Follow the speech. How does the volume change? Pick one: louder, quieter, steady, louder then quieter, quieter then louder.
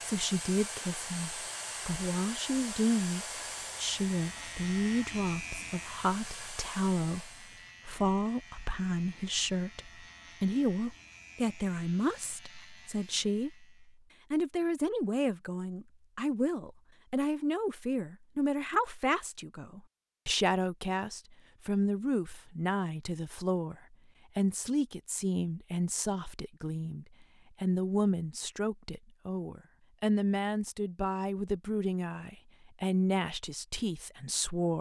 steady.